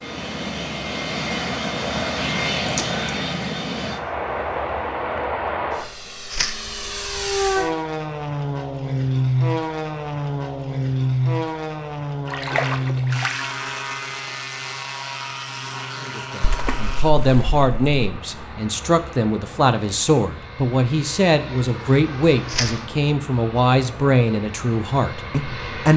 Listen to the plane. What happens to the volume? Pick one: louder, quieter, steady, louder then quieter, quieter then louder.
quieter.